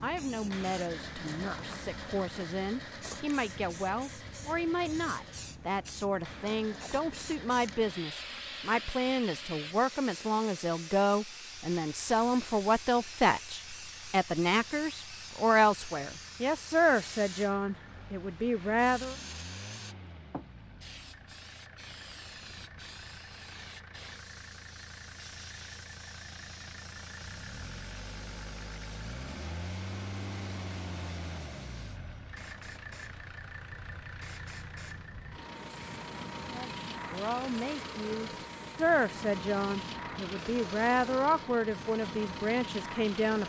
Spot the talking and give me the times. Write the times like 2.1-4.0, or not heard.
0.0-19.1, 36.5-43.4.